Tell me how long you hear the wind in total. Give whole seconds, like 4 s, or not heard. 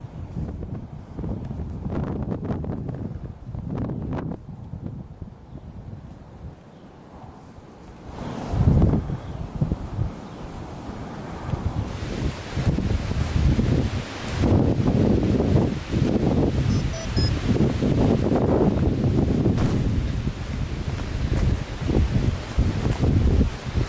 24 s.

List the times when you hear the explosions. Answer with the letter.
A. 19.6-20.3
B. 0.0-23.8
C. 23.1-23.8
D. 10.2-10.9
A.